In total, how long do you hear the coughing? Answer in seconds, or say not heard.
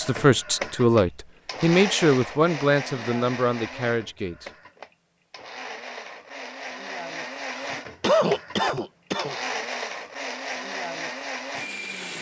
2 s.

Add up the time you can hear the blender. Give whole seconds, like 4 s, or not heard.
12 s.